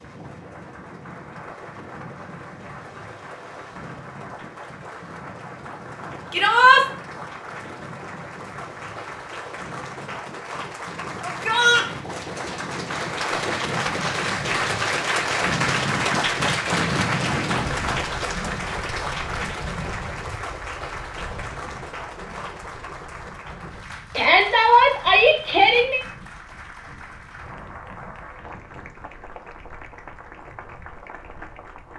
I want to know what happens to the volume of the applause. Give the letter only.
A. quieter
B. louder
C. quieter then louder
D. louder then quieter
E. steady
D.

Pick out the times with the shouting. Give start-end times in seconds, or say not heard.
6.3-6.8, 11.2-11.8, 24.1-26.0.